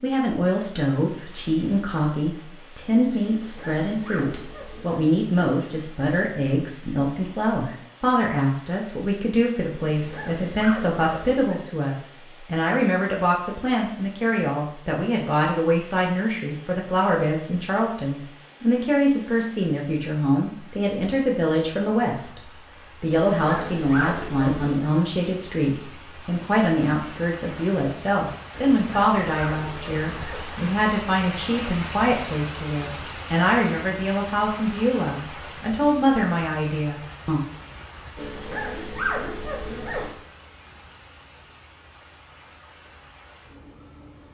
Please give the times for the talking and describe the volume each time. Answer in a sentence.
The talking can be heard from 0.0 to 22.4 s, at a steady volume; and from 23.0 to 37.4 s, at a steady volume.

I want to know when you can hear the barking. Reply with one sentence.
The barking can be heard from 3.2 to 5.0 s, from 9.8 to 11.6 s, from 23.1 to 24.9 s, from 28.5 to 30.5 s and from 38.1 to 40.1 s.